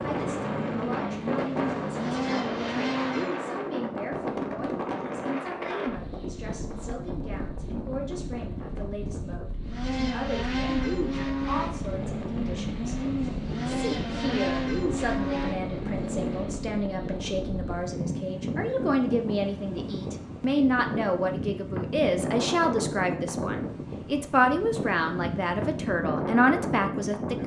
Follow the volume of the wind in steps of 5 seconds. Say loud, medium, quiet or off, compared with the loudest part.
loud, medium, medium, loud, loud, loud.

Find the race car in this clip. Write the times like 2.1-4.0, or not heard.
0.0-3.5, 9.6-16.6.